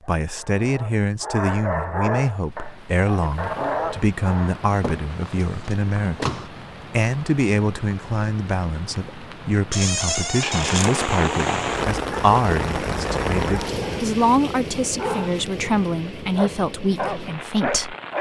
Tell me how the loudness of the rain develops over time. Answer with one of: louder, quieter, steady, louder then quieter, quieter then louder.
louder then quieter.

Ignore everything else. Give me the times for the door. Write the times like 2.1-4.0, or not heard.
4.8-6.5, 9.7-10.9.